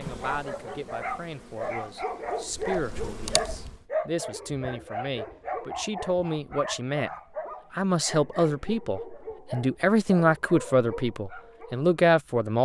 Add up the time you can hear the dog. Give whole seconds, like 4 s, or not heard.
12 s.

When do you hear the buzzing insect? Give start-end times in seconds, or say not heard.
0.0-3.9.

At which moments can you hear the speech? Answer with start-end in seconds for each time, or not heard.
0.0-7.1, 7.7-12.6.